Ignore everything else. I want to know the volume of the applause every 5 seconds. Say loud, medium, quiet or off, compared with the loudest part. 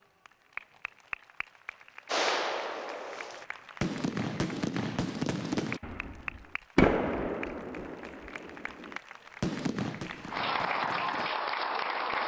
quiet, quiet, loud.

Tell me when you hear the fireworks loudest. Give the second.
7 s.